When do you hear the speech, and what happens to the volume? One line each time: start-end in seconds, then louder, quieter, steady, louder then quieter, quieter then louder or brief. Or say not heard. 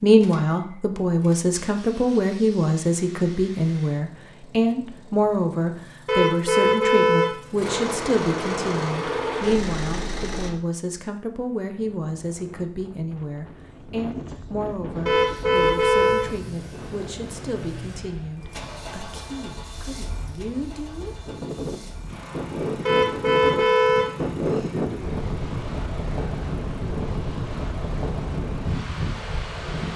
0.0-21.1 quieter.